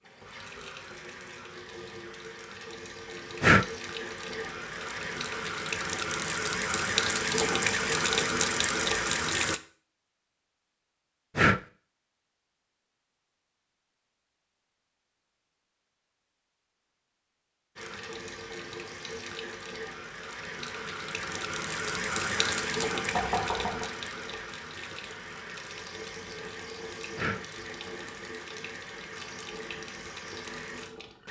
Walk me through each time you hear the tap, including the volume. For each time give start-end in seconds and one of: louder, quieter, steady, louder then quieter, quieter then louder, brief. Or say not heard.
0.0-9.6 louder
17.8-31.2 louder then quieter.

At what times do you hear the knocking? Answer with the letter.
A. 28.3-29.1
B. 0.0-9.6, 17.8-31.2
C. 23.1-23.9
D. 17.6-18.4
C.